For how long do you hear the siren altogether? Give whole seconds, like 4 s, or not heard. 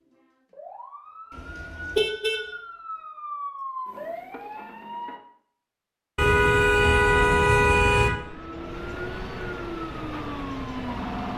10 s.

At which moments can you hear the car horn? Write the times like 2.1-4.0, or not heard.
1.4-2.5, 6.2-8.2.